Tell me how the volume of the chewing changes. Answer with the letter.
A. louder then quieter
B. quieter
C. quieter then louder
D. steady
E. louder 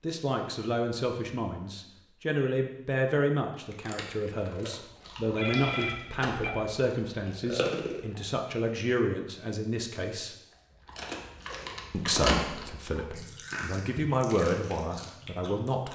A.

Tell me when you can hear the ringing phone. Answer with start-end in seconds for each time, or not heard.
5.3-6.5.